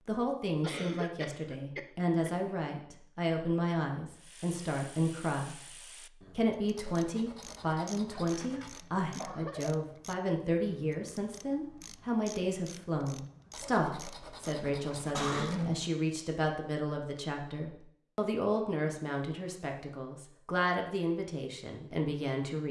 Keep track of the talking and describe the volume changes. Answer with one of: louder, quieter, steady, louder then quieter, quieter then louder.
steady.